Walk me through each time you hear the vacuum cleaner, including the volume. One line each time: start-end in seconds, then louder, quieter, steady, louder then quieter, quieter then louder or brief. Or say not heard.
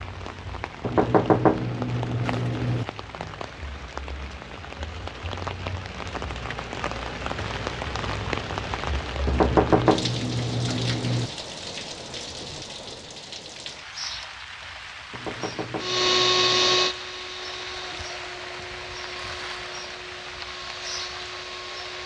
15.8-22.0 quieter.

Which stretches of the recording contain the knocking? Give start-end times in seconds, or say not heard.
0.8-2.9, 9.2-11.3, 15.1-16.9.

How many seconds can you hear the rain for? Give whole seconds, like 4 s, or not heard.
22 s.